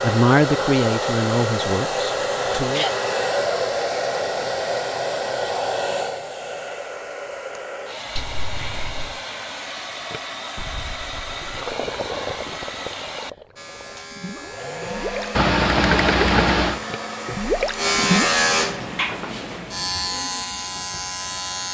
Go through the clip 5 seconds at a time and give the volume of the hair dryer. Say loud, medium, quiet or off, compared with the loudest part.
loud, medium, medium, medium, off.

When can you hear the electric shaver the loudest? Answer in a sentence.
The volume of the electric shaver peaks at 18 seconds.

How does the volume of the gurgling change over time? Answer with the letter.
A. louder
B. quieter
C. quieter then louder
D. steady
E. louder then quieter
C.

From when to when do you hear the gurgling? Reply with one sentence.
The gurgling can be heard from 10.1 to 18.4 s.